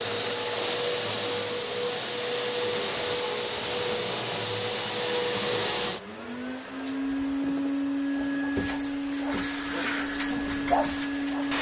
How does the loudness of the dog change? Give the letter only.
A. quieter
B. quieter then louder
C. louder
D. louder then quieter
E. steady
C.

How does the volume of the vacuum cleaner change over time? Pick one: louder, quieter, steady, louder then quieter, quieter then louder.
steady.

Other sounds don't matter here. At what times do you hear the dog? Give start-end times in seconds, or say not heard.
7.3-11.5.